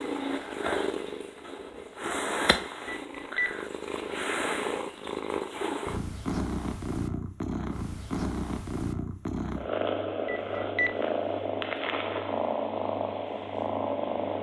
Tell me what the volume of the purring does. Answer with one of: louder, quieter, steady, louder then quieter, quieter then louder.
steady.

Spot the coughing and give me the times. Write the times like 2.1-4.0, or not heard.
not heard.